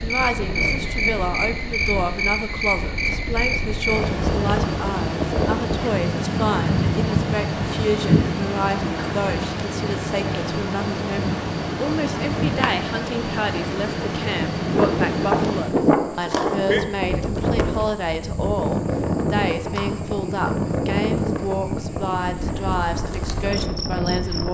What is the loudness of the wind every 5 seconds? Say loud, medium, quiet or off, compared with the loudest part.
medium, loud, loud, loud, loud.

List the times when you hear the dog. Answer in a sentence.
You can't hear the dog here.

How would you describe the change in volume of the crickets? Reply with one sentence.
The volume of the crickets goes down.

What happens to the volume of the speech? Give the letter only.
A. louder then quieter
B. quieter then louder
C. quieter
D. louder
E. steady
E.